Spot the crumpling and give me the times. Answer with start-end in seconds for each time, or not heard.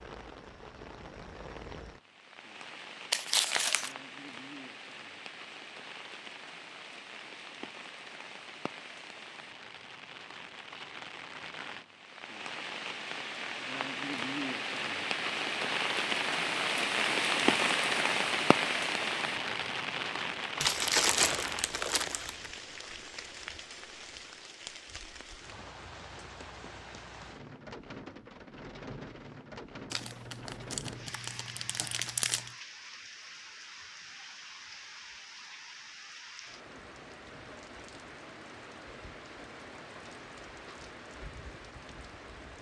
3.1-4.0, 20.6-22.5, 29.9-32.5.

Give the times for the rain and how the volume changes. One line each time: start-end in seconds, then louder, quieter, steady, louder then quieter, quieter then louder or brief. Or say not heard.
0.0-42.5 louder then quieter.